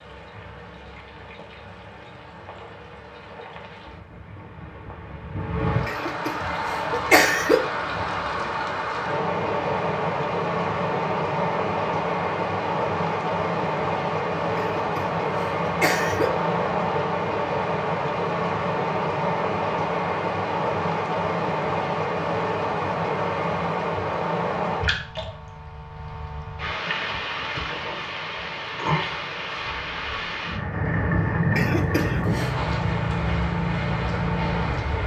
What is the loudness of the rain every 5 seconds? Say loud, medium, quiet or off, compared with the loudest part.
quiet, loud, loud, loud, loud, medium, loud.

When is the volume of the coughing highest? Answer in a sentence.
The loudest moment of the coughing is at 7 seconds.